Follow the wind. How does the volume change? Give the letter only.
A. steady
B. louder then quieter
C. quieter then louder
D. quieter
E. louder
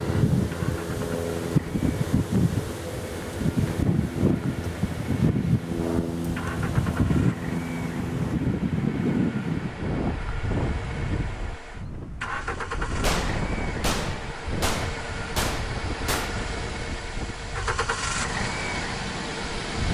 D.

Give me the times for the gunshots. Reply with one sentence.
You can hear the gunshots from 13.0 to 16.4 s.